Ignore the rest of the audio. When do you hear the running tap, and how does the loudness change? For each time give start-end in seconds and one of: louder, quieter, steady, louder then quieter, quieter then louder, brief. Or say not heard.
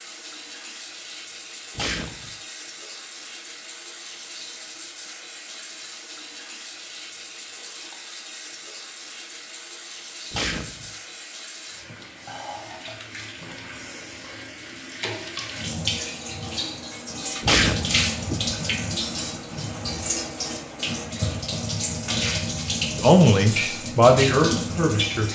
0.0-25.3 louder.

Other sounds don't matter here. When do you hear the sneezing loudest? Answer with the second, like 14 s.
18 s.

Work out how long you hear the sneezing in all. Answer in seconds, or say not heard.
2 s.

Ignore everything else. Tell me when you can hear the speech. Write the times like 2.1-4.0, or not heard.
23.0-25.3.